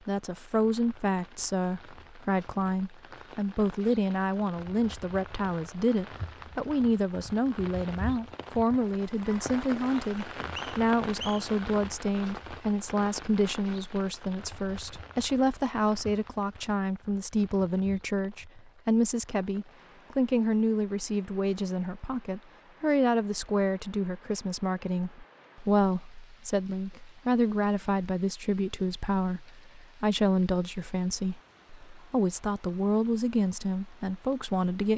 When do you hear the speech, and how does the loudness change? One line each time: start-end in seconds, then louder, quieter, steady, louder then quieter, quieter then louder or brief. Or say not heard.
0.1-34.9 steady.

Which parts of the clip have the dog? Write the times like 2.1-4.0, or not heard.
not heard.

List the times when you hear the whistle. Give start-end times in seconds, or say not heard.
10.2-11.5.